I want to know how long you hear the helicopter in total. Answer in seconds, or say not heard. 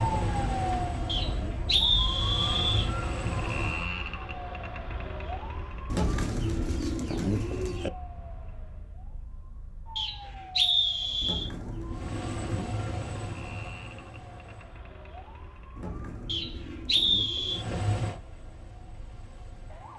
9 s.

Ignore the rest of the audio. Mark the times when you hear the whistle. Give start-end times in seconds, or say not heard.
1.1-2.9, 9.9-11.5, 16.2-17.6.